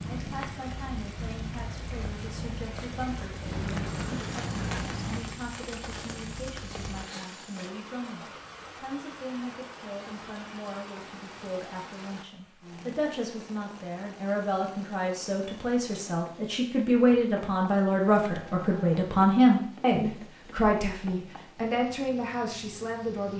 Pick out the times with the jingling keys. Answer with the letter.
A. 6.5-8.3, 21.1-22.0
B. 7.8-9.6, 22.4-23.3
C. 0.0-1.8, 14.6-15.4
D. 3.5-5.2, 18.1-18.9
D.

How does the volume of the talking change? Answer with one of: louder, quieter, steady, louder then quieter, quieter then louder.
louder.